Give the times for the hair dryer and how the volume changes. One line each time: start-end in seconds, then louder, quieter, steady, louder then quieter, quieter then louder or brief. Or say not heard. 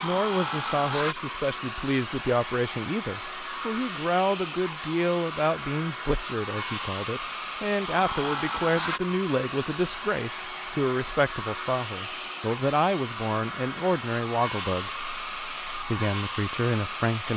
0.0-17.3 steady.